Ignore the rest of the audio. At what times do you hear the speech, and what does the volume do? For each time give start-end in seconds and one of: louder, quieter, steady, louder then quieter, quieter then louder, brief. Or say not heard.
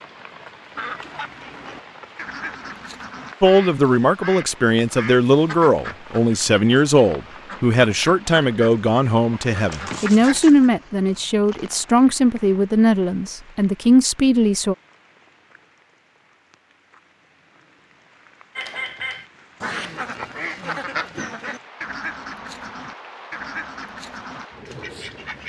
3.4-14.8 steady.